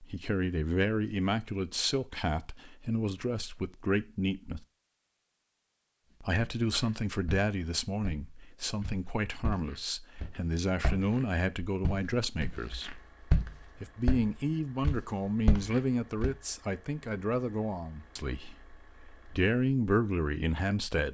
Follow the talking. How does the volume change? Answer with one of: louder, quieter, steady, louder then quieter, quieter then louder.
steady.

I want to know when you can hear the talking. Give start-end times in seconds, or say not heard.
0.0-4.7, 6.2-13.0, 13.8-21.0.